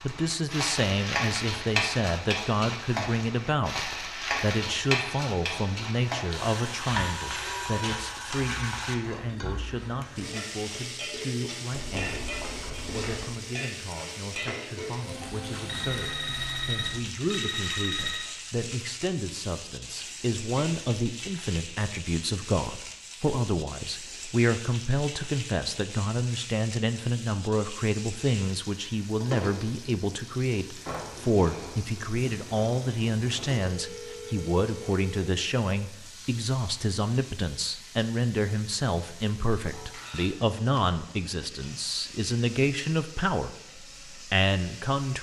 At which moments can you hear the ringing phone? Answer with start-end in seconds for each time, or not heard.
7.1-8.1, 15.7-18.2, 33.6-35.5.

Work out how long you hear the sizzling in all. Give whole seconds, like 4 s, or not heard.
45 s.